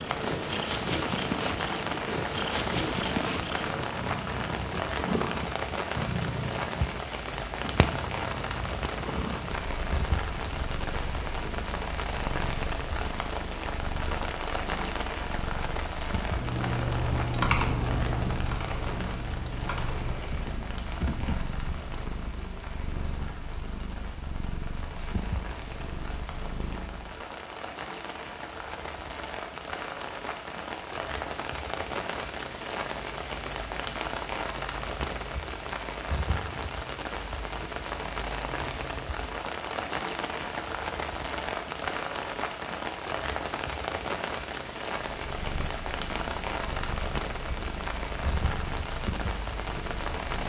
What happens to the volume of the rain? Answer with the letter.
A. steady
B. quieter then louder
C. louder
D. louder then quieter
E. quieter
B.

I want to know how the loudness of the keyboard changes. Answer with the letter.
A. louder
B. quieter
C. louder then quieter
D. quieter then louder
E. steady
B.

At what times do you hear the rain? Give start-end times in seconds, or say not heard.
0.0-50.4.